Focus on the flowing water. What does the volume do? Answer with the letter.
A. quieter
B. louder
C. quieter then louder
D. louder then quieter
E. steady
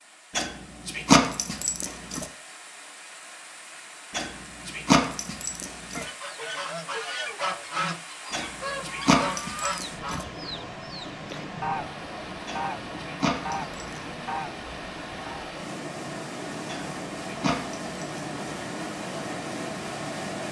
B.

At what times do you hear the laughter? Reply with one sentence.
The laughter can't be heard in this clip.